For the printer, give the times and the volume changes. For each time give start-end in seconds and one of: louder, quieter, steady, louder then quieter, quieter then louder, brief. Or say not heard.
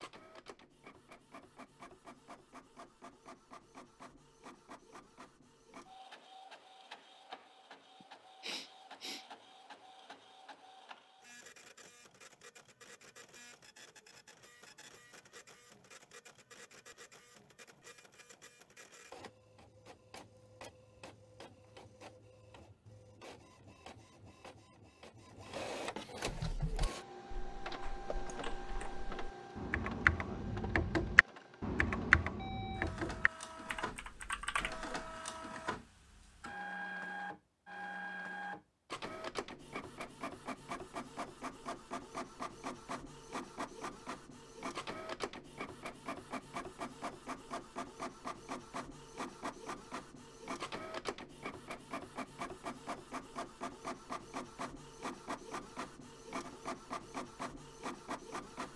0.0-58.7 louder.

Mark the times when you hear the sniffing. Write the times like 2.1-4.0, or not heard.
8.0-9.2.